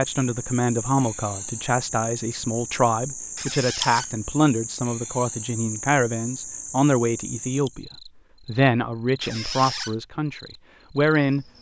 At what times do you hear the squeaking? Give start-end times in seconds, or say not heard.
3.4-4.1, 9.2-9.9.